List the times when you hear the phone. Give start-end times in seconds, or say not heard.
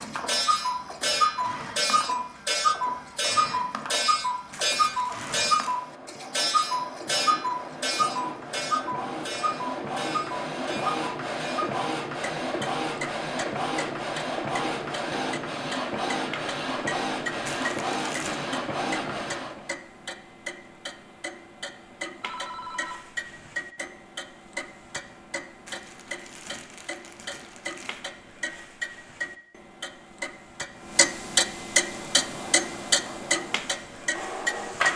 22.2-23.6.